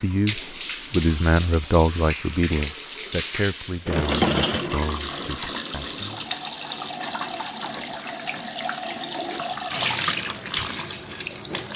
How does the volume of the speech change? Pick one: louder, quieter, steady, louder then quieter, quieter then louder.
quieter.